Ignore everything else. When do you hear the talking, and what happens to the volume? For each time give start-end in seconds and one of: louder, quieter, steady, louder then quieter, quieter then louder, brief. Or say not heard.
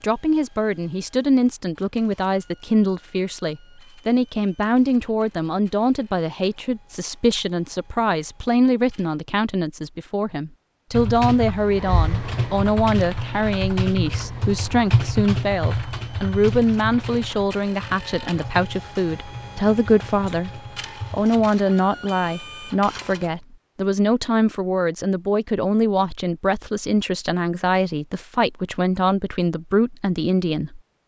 0.0-30.8 steady.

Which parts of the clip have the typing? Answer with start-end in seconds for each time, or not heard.
10.9-21.5.